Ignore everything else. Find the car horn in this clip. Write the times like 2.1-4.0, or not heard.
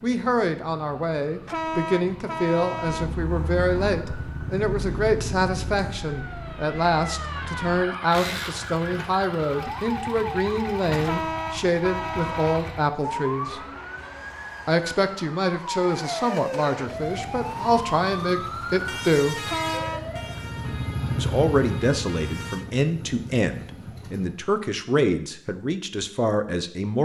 1.4-3.1, 11.0-12.7, 19.4-20.1.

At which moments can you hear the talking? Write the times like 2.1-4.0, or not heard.
0.0-13.6, 14.7-19.4, 21.1-27.0.